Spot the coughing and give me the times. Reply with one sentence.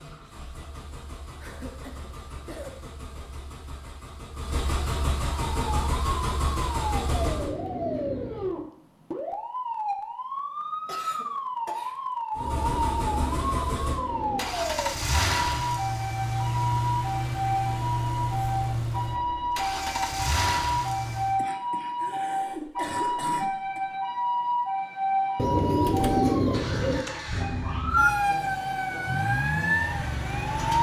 You can hear the coughing from 1.4 to 2.7 s, from 10.8 to 11.9 s and from 21.4 to 23.8 s.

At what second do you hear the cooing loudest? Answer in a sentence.
The loudest moment of the cooing is at 26 seconds.